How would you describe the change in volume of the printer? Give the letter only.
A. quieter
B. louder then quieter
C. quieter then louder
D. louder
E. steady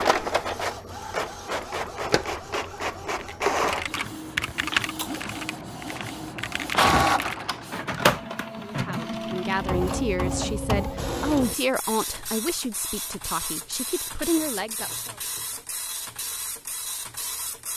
A.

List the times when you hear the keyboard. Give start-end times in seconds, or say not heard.
3.2-7.5.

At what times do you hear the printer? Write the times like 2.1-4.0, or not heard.
0.0-17.7.